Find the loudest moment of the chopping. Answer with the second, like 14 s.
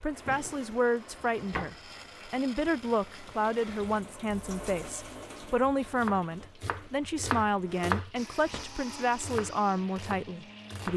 8 s.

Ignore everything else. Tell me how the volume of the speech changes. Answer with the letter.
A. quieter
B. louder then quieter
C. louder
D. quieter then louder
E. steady
E.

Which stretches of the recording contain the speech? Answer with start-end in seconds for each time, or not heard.
0.0-10.9.